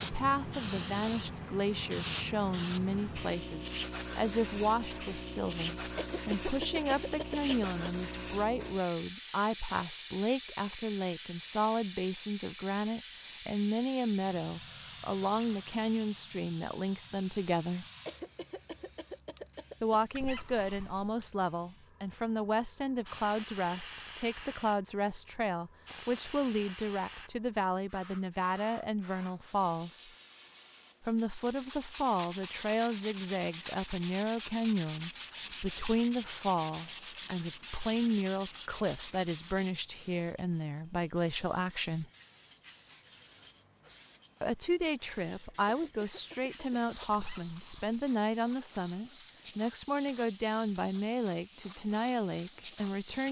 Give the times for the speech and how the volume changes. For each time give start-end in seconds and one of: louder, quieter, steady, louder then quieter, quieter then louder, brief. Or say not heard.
0.0-17.9 steady
19.8-30.1 steady
31.1-42.0 steady
44.4-53.2 steady.